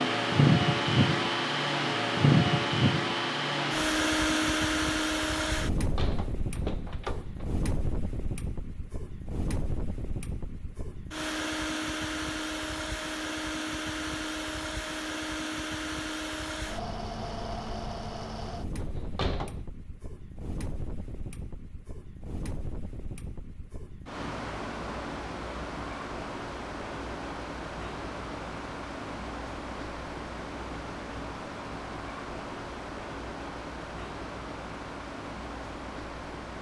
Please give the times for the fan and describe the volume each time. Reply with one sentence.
You can hear the fan from 0.0 to 36.5 s, getting quieter.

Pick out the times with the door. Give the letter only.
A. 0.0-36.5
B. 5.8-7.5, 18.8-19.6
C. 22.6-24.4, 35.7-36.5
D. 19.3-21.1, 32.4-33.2
B.